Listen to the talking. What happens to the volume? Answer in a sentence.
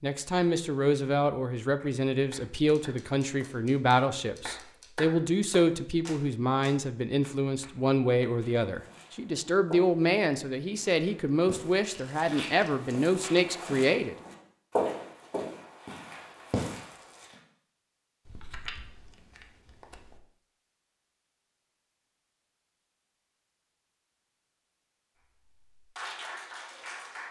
The volume of the talking stays about the same.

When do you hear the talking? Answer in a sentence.
The talking can be heard from 0.0 to 14.2 s.